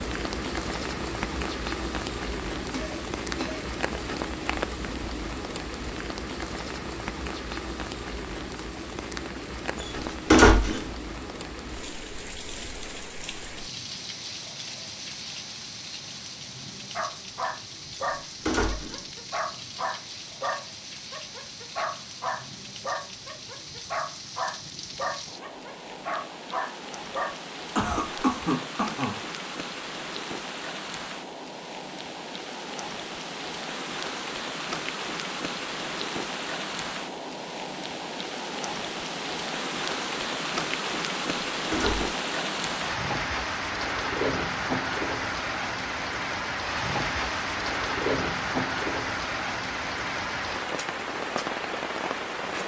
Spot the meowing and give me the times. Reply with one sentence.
You can't hear the meowing here.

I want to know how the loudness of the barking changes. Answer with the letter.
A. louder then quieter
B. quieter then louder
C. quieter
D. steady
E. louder
D.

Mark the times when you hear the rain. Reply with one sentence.
The rain can be heard from 0.0 to 52.6 s.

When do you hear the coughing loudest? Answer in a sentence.
The volume of the coughing peaks at 28 seconds.